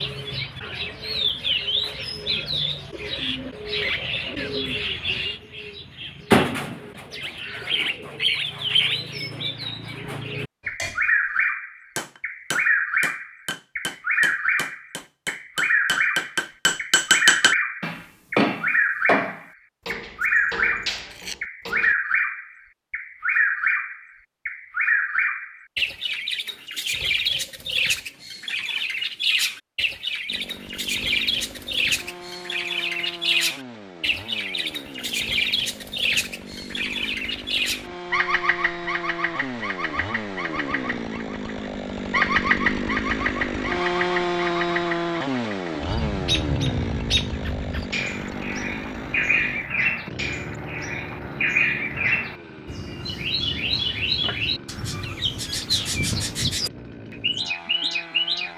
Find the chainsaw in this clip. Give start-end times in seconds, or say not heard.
30.2-58.5.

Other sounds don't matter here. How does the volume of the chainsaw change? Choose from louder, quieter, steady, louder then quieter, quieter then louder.
louder then quieter.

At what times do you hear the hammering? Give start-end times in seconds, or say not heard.
10.6-21.9.